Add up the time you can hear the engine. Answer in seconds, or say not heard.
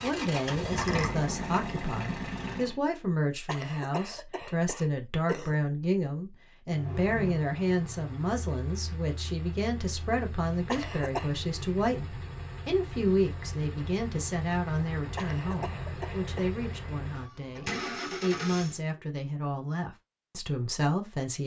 15 s.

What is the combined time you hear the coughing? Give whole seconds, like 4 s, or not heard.
4 s.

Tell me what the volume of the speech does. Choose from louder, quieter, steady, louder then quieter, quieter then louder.
steady.